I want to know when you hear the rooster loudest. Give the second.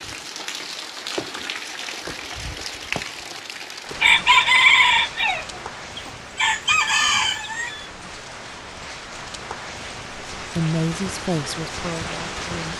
5 s.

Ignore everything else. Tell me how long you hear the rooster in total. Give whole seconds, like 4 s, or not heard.
4 s.